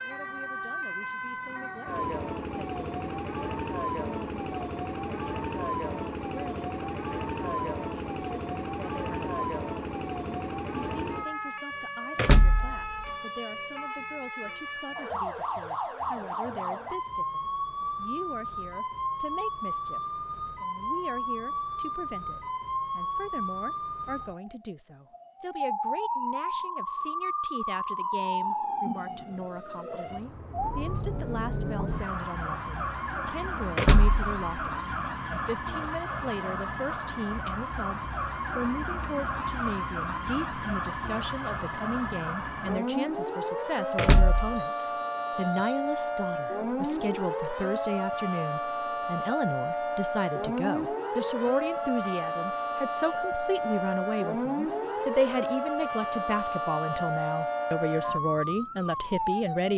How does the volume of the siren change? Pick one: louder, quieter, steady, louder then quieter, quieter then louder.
steady.